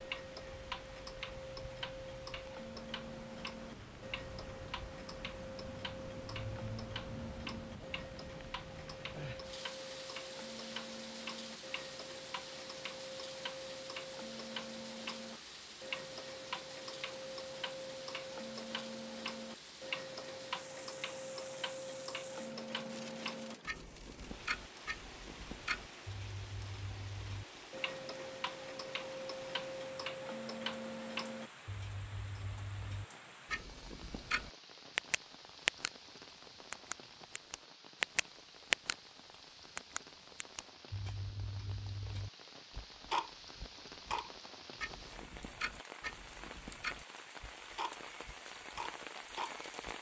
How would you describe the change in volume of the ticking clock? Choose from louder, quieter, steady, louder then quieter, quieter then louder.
louder.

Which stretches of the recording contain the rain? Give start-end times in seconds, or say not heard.
0.0-49.9.